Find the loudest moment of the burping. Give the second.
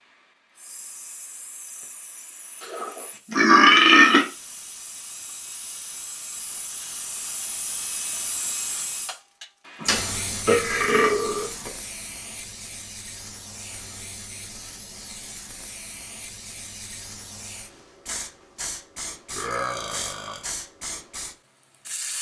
4 s.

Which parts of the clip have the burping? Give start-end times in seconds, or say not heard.
2.6-4.2, 9.8-11.7, 19.3-20.5.